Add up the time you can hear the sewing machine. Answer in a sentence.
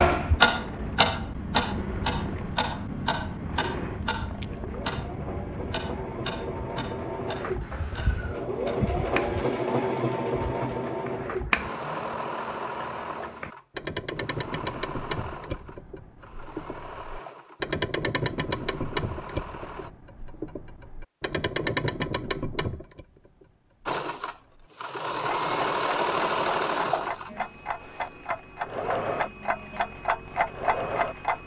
You can hear the sewing machine for 27 seconds altogether.